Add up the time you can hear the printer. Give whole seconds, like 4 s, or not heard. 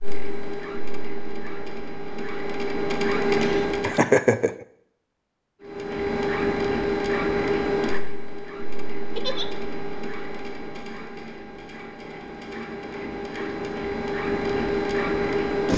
14 s.